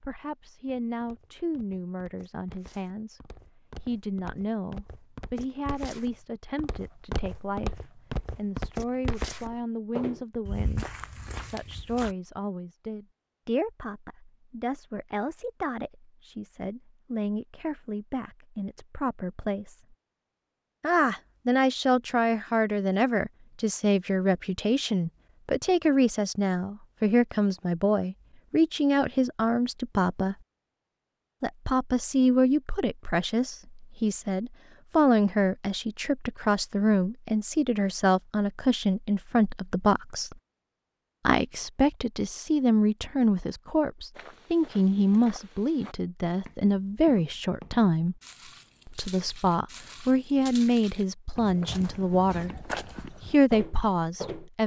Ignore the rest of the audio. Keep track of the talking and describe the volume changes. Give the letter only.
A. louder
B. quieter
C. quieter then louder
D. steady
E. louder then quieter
A.